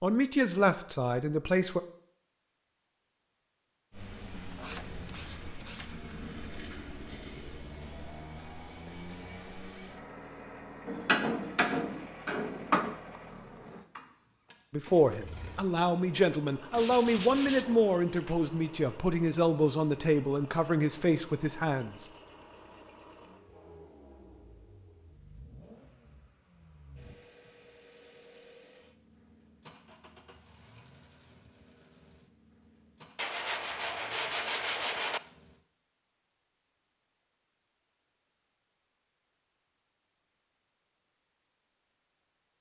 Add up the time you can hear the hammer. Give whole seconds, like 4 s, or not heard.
2 s.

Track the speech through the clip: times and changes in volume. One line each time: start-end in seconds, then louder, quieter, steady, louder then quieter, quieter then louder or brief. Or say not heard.
0.0-1.8 brief
14.7-22.1 steady.